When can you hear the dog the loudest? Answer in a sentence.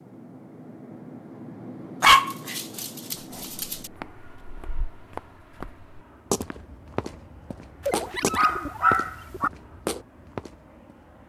The volume of the dog peaks at 2 seconds.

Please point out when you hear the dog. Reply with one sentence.
You can hear the dog from 2.0 to 3.9 s and from 7.8 to 9.5 s.